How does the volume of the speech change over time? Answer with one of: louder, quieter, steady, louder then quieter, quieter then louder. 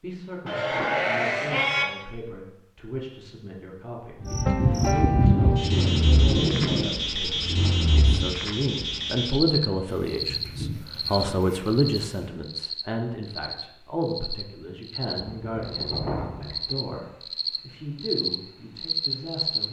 louder then quieter.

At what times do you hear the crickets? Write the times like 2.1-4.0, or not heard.
4.2-19.6.